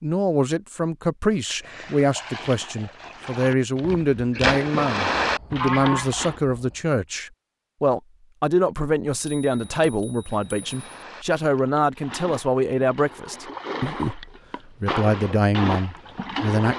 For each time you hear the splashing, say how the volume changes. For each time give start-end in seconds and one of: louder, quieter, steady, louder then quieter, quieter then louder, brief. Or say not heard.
1.4-6.4 louder
10.2-16.7 louder.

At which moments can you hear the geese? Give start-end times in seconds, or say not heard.
5.2-6.8.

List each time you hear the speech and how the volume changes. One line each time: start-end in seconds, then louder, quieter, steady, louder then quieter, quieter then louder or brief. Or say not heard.
0.0-16.7 steady.